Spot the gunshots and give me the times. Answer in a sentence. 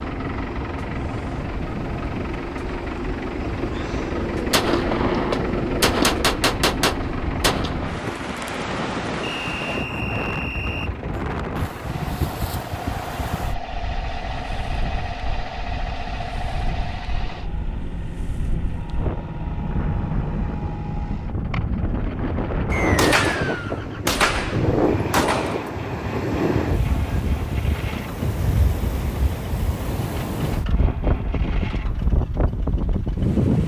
You can hear the gunshots from 4.5 to 7.9 s and from 22.7 to 25.7 s.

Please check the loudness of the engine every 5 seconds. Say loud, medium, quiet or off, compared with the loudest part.
loud, loud, medium, medium, medium, medium, medium.